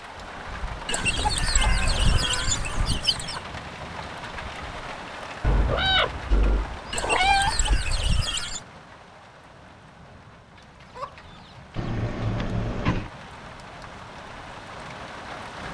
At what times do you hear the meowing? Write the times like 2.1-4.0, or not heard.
0.9-3.0, 5.4-7.8, 11.8-13.1.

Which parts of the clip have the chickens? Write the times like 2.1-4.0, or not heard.
0.8-3.4, 6.9-8.6, 10.6-12.3.